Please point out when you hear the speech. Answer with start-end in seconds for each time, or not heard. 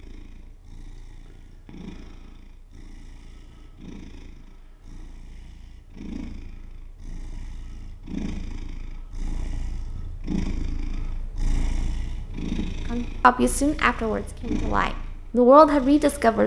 12.9-16.4.